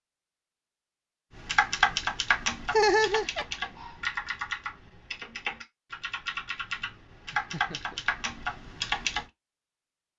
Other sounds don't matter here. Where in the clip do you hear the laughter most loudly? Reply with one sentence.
The loudest moment of the laughter is at 3 seconds.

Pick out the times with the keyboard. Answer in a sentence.
The keyboard can be heard from 1.4 to 9.2 s.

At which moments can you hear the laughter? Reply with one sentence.
The laughter can be heard from 2.7 to 3.5 s and from 7.3 to 8.1 s.